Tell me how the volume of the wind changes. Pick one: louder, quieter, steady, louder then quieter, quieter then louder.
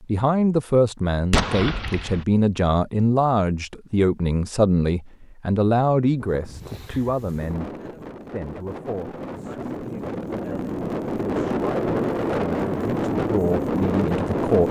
louder.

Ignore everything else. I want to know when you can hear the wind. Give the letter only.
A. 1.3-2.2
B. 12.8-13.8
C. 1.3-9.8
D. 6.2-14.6
D.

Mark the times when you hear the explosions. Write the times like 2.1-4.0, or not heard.
1.3-2.2.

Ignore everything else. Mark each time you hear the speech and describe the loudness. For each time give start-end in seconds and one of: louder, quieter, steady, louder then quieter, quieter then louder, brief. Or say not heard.
0.0-14.6 quieter then louder.